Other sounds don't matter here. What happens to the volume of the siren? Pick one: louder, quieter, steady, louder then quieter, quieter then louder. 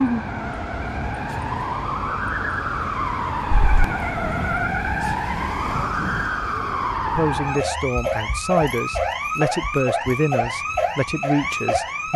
steady.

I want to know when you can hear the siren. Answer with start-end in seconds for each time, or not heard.
0.0-12.1.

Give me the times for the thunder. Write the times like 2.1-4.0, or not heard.
3.5-6.3.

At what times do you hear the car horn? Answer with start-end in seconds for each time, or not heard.
not heard.